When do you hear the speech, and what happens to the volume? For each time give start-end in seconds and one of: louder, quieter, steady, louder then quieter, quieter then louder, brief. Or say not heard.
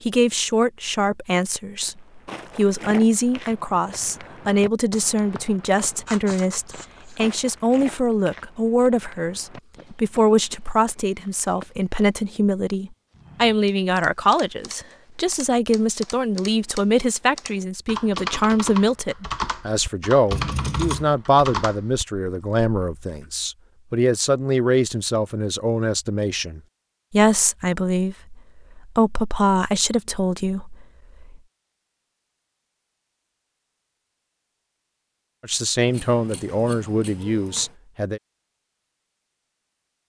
0.0-31.4 steady
35.4-38.2 brief.